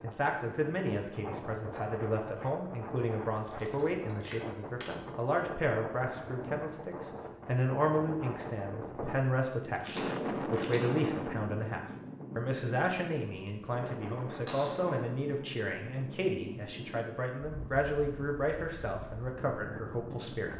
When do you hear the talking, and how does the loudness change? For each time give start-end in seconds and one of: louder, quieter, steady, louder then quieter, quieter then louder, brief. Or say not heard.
0.0-20.5 steady.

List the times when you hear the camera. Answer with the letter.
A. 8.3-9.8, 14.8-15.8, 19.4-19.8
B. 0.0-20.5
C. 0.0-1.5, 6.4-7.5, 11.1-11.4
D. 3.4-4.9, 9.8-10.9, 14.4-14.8
D.